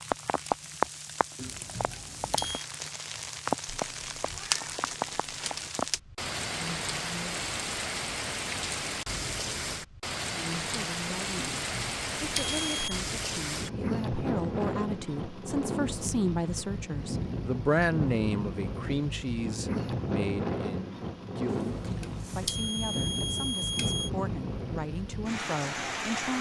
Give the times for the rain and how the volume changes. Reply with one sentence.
You can hear the rain from 0.0 to 26.3 s, at a steady volume.